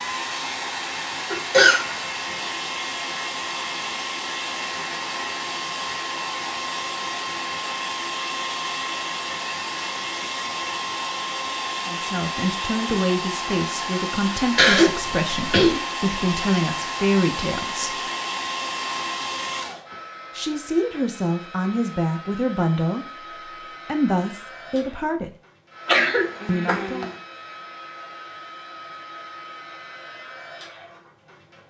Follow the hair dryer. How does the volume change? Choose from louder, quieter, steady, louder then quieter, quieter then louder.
quieter.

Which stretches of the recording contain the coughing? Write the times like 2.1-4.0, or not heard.
1.3-1.9, 14.6-15.8, 25.9-27.1.